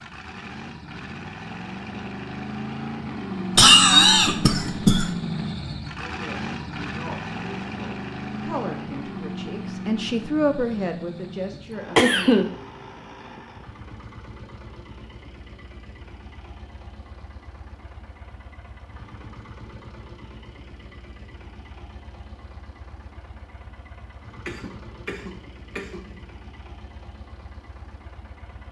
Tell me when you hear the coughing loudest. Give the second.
4 s.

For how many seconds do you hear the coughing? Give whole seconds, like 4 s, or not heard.
4 s.